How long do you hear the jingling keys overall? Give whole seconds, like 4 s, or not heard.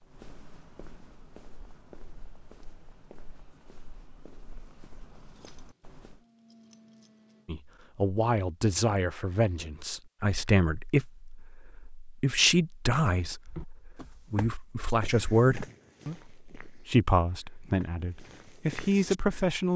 2 s.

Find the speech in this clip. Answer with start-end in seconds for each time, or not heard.
7.5-19.7.